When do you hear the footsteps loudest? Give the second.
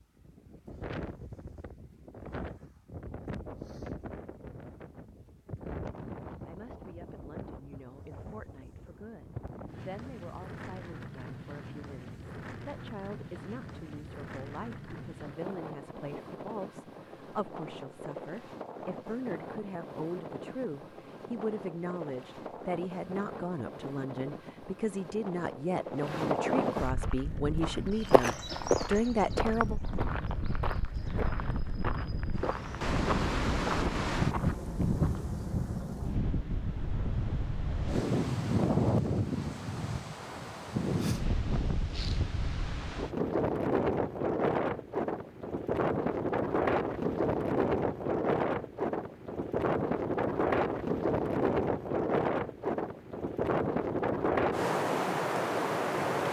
29 s.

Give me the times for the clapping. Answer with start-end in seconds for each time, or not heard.
not heard.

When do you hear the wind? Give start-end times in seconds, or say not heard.
0.0-56.2.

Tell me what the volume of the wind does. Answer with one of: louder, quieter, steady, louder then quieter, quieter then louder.
louder.